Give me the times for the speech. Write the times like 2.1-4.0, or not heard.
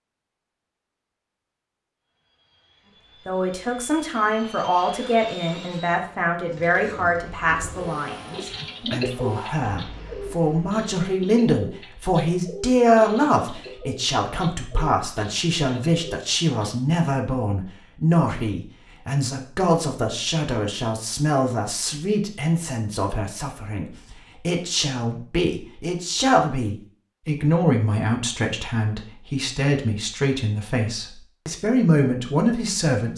3.2-33.1.